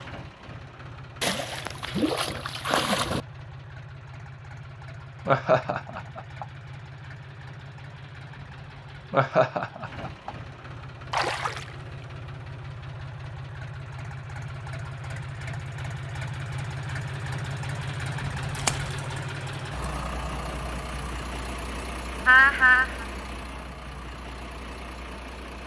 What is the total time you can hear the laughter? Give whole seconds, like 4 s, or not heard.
3 s.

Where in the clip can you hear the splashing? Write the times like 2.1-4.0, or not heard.
1.2-3.2, 11.1-12.1, 18.6-19.0.